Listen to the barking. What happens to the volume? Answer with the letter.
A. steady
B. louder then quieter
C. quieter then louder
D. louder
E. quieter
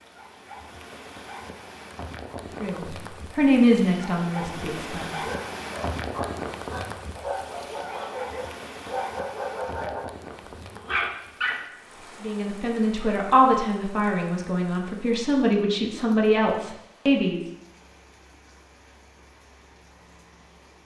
D.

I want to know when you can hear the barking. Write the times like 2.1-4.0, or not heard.
5.2-11.6.